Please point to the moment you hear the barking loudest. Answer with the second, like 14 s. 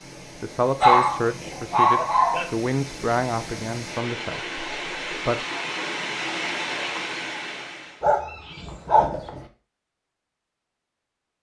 1 s.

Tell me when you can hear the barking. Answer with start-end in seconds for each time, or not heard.
0.8-2.5, 8.0-9.4.